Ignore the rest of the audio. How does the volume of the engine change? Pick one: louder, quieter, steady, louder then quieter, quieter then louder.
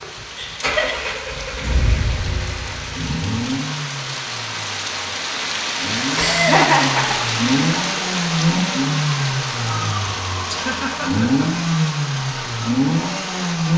louder.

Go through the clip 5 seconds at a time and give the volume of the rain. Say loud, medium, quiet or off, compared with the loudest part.
medium, loud, medium.